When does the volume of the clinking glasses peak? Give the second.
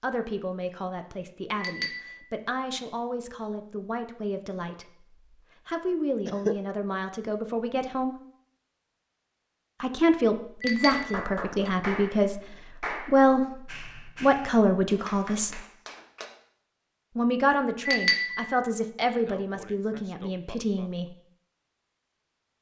18 s.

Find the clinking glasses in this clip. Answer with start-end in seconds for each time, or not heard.
1.6-2.2, 10.6-11.7, 17.9-18.6.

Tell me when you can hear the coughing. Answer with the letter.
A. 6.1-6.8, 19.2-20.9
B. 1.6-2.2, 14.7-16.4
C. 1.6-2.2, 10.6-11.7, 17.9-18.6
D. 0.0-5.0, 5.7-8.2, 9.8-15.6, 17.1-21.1
A.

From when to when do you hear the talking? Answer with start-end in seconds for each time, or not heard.
0.0-5.0, 5.7-8.2, 9.8-15.6, 17.1-21.1.